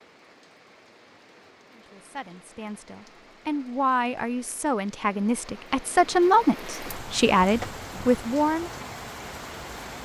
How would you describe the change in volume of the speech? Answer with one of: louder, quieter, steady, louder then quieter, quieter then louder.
louder.